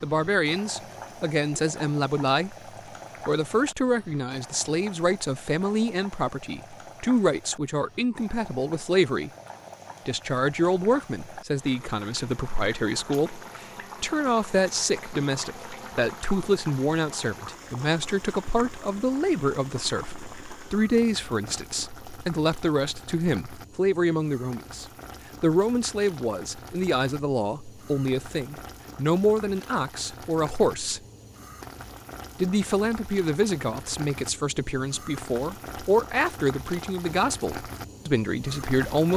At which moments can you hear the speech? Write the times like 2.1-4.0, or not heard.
0.0-2.5, 3.2-9.3, 10.1-31.0, 32.4-39.1.